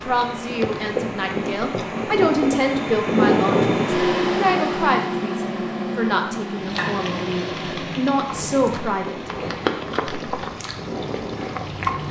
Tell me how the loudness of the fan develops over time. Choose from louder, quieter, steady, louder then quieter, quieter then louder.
louder then quieter.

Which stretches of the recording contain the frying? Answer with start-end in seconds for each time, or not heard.
6.5-12.0.